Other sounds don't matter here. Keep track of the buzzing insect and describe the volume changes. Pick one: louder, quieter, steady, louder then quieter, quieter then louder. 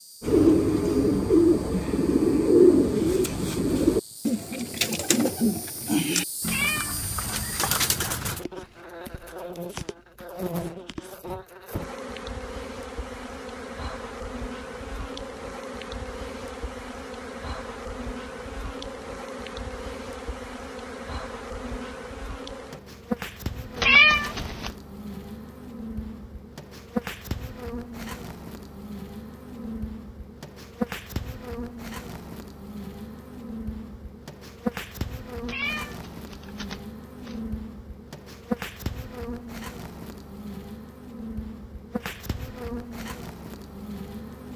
louder.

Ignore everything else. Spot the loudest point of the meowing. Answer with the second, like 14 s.
24 s.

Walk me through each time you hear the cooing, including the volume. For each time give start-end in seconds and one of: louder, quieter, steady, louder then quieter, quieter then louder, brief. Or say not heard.
0.2-8.4 quieter.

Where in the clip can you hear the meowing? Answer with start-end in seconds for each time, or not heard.
6.4-7.2, 23.8-24.7, 35.5-37.4.